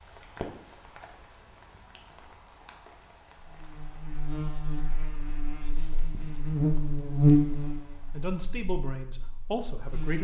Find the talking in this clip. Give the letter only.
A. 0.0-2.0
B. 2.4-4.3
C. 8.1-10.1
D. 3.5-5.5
C.